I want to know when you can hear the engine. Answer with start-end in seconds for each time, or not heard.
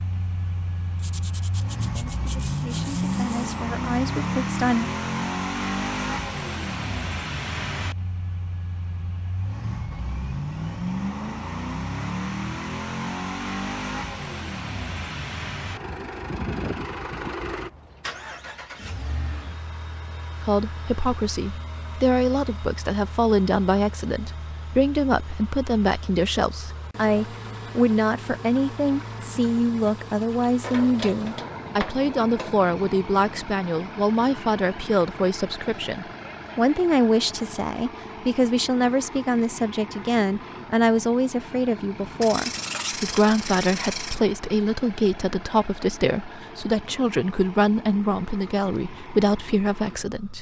0.0-50.3.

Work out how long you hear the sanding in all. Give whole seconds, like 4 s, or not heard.
5 s.